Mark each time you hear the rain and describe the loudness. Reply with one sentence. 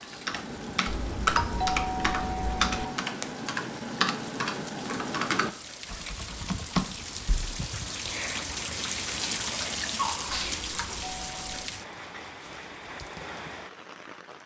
You can hear the rain from 0.0 to 14.4 s, getting louder then quieter.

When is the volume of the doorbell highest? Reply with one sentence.
The loudest moment of the doorbell is at 2 seconds.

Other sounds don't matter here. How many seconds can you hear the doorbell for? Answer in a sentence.
The doorbell can be heard for 3 seconds in total.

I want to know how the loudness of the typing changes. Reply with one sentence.
The loudness of the typing stays about the same.